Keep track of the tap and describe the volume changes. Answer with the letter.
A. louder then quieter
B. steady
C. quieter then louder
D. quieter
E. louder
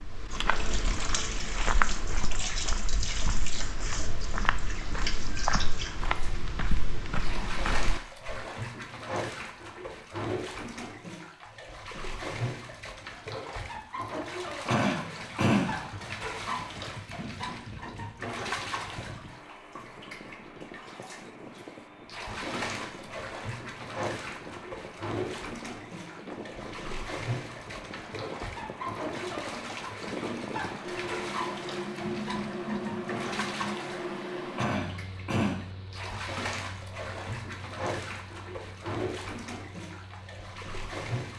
B.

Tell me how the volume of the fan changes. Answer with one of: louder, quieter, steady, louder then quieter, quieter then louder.
louder then quieter.